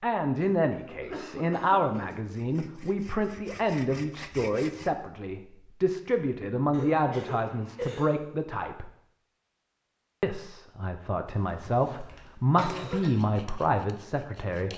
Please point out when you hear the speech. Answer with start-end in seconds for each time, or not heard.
0.0-8.9, 10.2-14.7.